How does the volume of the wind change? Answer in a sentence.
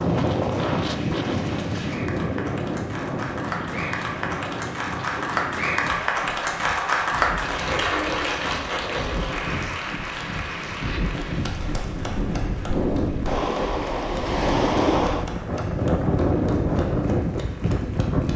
The loudness of the wind goes down, then up.